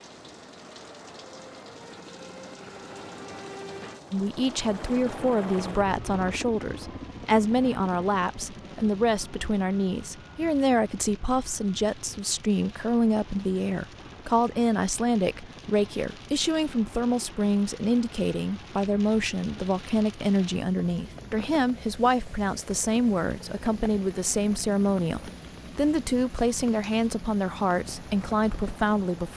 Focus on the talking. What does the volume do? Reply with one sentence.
The volume of the talking stays about the same.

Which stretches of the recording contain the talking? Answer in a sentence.
The talking can be heard from 4.1 to 29.3 s.